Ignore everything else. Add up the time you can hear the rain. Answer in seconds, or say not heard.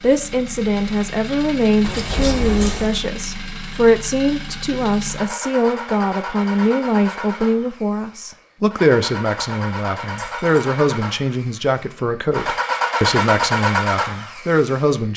not heard.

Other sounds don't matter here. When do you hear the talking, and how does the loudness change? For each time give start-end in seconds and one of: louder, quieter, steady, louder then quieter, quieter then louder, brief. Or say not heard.
0.0-15.1 steady.